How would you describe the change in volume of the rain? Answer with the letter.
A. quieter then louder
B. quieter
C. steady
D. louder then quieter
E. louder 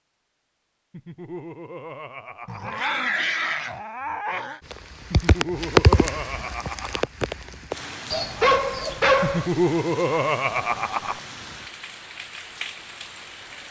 B.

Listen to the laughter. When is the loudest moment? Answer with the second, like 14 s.
10 s.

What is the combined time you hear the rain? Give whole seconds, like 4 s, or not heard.
9 s.